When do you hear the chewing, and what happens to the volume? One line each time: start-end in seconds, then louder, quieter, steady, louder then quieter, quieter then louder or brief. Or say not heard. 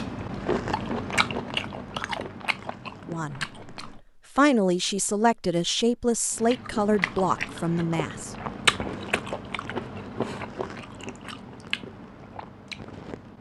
0.0-4.0 quieter
6.3-13.3 louder then quieter.